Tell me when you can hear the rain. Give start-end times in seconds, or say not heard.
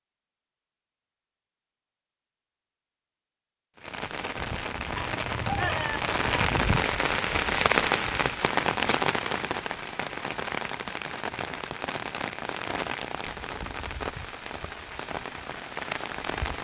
3.8-16.5.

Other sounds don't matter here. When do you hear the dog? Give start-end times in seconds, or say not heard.
5.0-6.5.